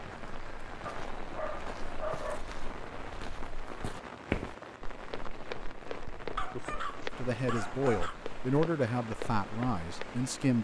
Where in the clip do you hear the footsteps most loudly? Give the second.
4 s.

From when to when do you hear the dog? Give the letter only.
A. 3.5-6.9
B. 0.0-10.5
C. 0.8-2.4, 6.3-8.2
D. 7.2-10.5
C.